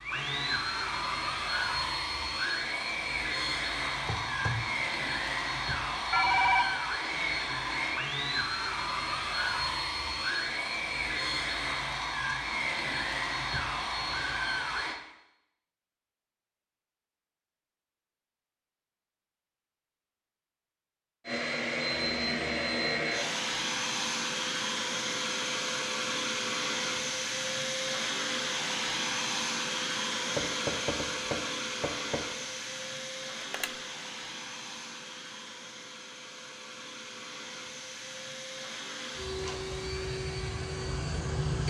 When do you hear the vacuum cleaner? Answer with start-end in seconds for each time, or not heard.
0.0-15.0, 21.2-41.6.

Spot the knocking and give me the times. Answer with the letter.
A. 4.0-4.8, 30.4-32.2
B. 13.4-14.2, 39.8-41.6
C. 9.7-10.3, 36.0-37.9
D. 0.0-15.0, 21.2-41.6
A.